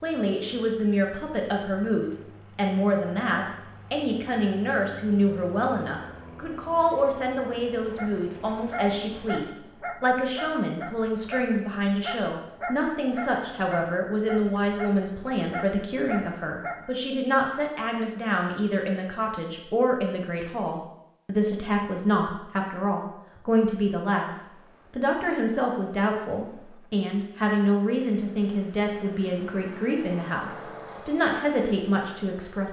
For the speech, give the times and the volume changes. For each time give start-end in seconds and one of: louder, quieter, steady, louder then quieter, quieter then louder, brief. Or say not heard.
0.0-32.6 steady.